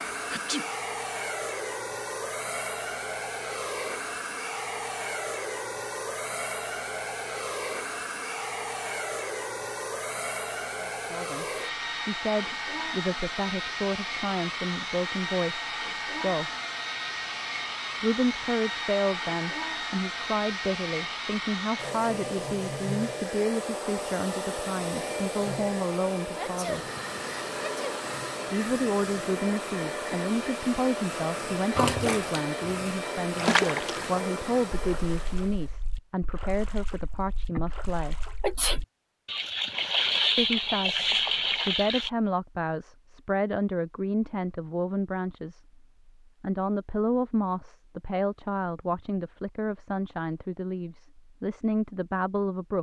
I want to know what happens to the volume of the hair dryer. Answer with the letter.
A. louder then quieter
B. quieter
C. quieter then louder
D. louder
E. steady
E.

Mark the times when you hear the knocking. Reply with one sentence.
The knocking can't be heard in this clip.